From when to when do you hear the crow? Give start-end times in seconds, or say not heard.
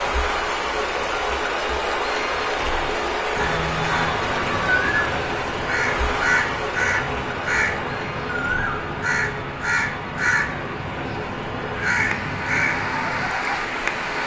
3.4-13.3.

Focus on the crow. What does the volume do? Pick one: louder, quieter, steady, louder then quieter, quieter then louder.
steady.